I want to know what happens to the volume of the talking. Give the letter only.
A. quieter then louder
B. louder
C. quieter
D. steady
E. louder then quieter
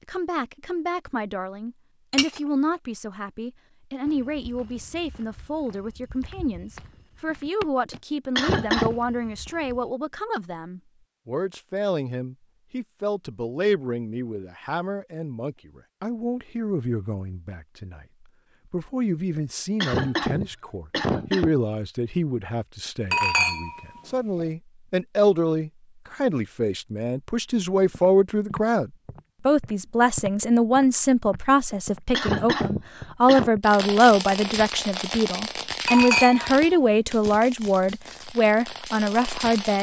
B.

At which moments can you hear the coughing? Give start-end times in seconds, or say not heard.
7.9-8.9, 19.4-21.6, 31.7-33.5.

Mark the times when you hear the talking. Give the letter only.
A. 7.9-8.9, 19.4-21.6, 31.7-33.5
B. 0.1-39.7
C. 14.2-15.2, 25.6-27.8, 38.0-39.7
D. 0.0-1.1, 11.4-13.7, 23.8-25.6
B.